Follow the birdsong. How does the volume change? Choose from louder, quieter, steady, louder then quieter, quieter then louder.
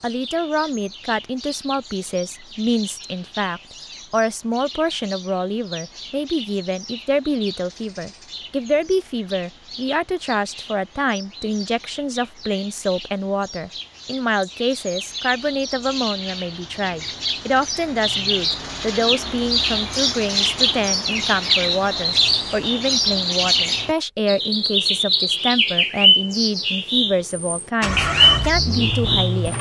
louder.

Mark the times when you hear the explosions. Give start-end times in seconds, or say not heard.
not heard.